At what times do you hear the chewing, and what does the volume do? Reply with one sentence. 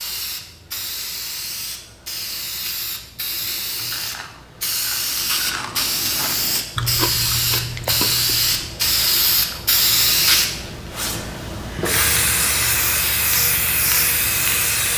You can hear the chewing from 3.8 to 9.8 s, getting louder then quieter.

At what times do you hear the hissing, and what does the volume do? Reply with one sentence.
You can hear the hissing from 0.0 to 14.9 s, getting louder.